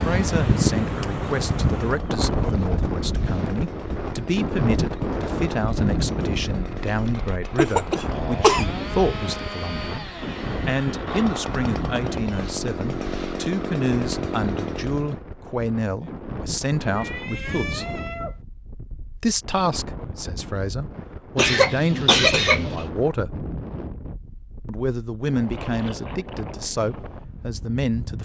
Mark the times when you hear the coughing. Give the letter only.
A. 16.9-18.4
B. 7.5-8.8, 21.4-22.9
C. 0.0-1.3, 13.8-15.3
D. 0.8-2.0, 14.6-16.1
B.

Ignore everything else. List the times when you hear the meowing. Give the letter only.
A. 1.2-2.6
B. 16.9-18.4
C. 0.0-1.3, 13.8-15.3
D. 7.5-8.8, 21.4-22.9
B.